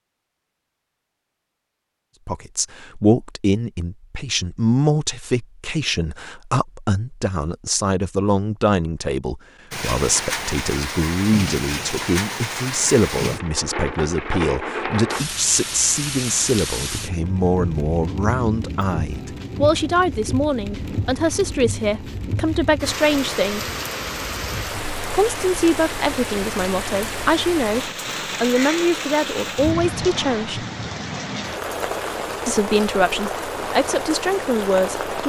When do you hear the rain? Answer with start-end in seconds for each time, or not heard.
9.7-35.2.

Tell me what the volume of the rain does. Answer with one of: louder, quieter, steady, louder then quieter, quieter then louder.
steady.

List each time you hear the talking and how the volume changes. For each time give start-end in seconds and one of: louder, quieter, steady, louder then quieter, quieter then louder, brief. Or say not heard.
2.2-23.6 steady
25.1-30.6 steady
32.5-35.2 brief.